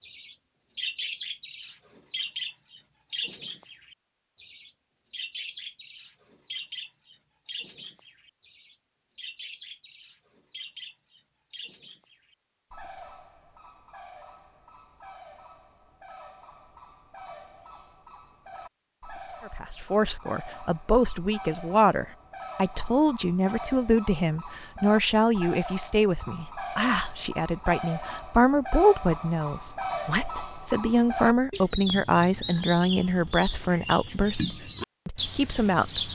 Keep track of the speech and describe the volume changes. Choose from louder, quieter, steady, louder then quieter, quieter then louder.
steady.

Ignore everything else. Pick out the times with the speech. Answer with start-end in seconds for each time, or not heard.
19.4-36.0.